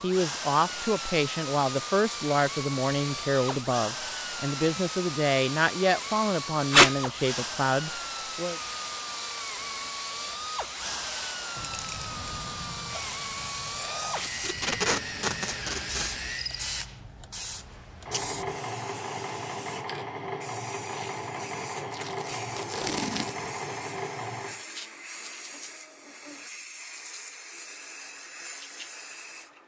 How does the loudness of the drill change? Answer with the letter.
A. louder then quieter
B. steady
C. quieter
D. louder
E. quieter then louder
B.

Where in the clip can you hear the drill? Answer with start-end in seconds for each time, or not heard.
0.0-24.6.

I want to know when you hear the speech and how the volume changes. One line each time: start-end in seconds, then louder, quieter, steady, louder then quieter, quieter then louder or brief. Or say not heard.
0.0-8.6 steady.